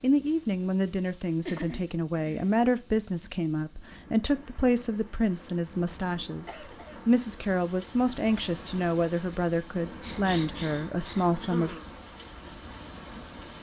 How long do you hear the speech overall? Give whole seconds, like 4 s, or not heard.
12 s.